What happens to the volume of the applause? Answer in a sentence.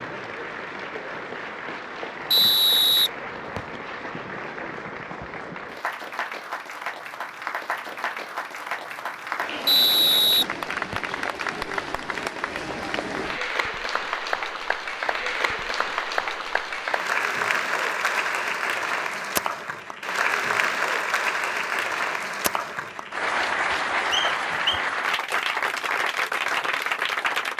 The volume of the applause goes up.